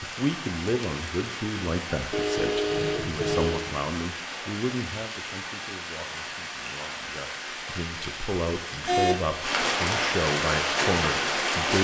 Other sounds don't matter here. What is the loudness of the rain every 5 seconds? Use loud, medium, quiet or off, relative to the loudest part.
medium, medium, loud.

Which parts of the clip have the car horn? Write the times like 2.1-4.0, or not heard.
2.1-3.7, 8.8-9.2.